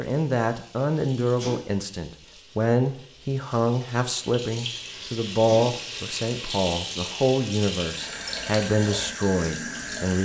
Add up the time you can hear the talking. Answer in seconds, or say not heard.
10 s.